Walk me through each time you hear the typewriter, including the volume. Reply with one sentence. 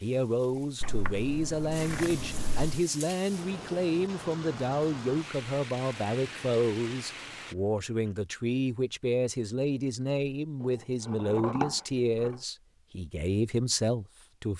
The typewriter can't be heard in this clip.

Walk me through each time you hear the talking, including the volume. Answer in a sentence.
You can hear the talking from 0.0 to 14.5 s, at a steady volume.